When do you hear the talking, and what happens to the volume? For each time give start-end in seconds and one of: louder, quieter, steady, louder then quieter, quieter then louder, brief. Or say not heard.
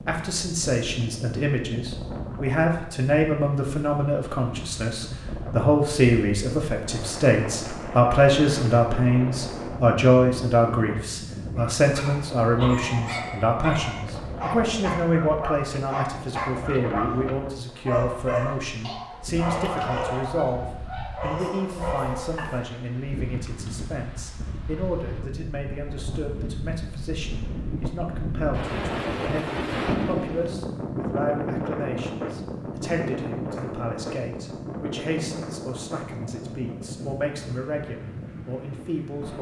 0.1-39.3 quieter.